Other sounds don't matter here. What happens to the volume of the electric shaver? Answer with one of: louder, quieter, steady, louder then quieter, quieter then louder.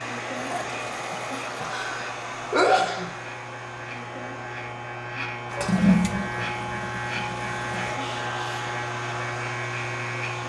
louder.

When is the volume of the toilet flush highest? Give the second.
6 s.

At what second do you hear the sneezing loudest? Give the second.
3 s.